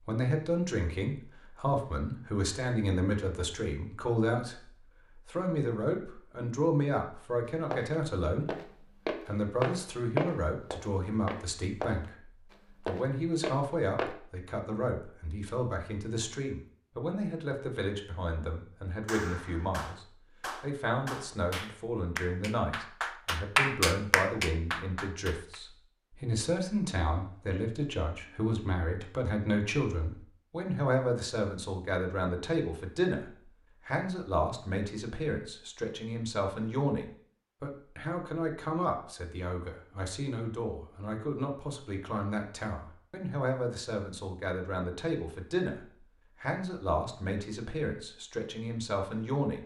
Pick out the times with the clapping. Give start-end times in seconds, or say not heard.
19.1-25.6.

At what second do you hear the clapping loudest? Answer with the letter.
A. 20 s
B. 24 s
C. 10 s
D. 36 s
B.